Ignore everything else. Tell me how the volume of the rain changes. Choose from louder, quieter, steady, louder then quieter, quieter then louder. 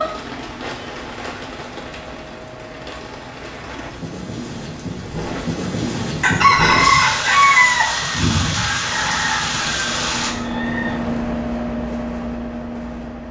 louder.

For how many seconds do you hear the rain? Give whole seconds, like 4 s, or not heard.
10 s.